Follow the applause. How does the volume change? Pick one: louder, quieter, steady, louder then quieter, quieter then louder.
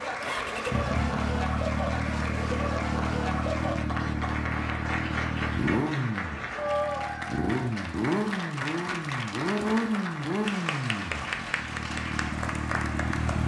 steady.